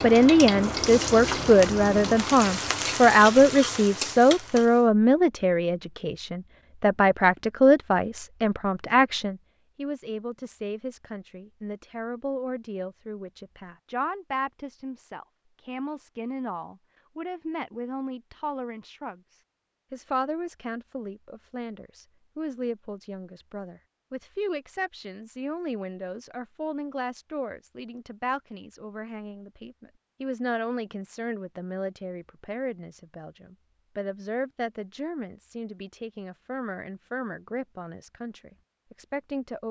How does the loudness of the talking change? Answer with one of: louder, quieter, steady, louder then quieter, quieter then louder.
quieter.